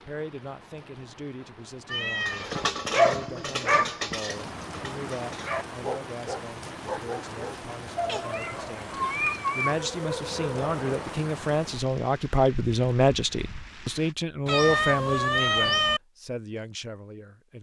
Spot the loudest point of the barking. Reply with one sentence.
The loudest moment of the barking is at 3 seconds.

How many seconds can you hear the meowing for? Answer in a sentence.
The meowing can be heard for 4 seconds in total.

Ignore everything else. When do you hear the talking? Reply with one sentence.
The talking can be heard from 0.1 to 17.5 s.